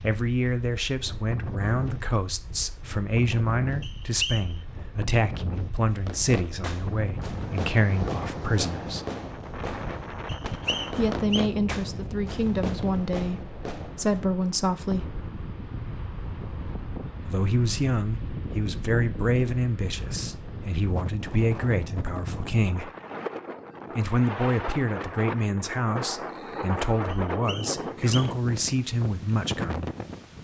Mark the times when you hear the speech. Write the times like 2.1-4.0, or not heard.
0.0-9.1, 10.9-15.2, 17.2-22.9, 23.9-29.9.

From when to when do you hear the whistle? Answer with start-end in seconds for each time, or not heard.
3.8-4.5, 10.2-11.4, 27.2-28.4.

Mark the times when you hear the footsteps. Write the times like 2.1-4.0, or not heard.
not heard.